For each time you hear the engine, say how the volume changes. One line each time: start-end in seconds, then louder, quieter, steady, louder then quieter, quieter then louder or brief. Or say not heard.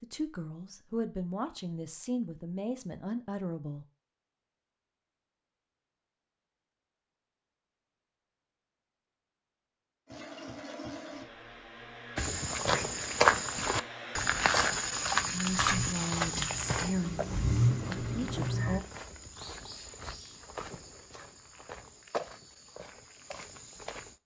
10.1-18.9 louder.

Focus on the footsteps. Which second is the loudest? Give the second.
13 s.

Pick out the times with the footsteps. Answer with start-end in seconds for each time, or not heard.
12.2-24.2.